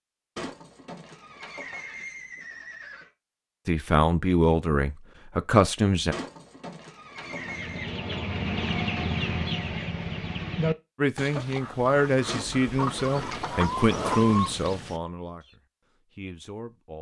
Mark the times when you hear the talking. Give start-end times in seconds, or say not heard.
3.6-6.2, 10.9-16.9.